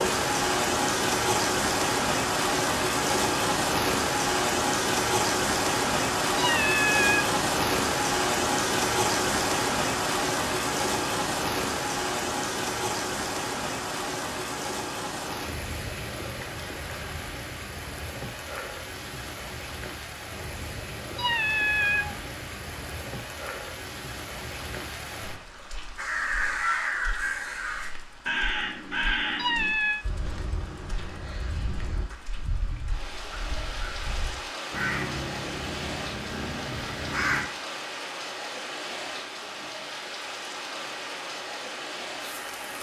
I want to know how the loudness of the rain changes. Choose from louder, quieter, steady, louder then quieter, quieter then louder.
quieter then louder.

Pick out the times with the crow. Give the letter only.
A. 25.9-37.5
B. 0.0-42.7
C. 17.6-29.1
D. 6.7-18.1
A.